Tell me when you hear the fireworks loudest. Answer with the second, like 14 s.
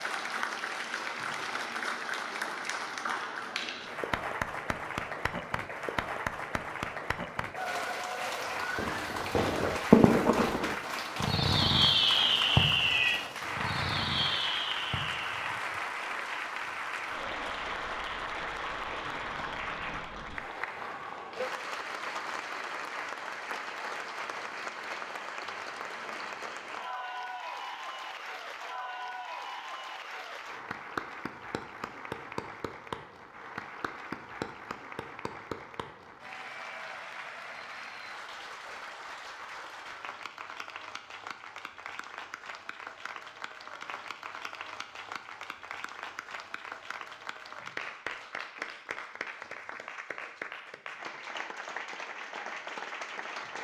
10 s.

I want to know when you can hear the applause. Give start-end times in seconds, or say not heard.
0.0-53.6.